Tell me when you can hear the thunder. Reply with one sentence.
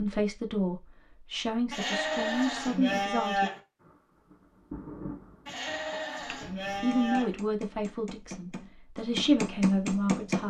You can hear the thunder from 3.8 to 7.0 s.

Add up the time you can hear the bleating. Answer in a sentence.
The bleating can be heard for 4 seconds in total.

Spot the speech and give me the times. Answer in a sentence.
You can hear the speech from 0.0 to 3.5 s and from 6.2 to 10.4 s.